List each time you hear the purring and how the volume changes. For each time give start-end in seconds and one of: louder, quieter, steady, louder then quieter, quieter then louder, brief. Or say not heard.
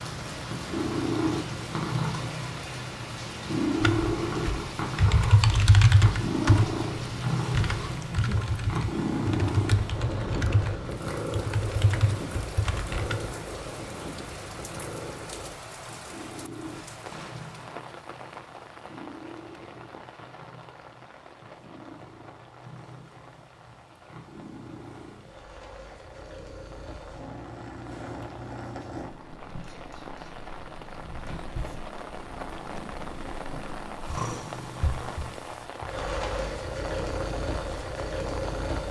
0.0-38.8 quieter then louder.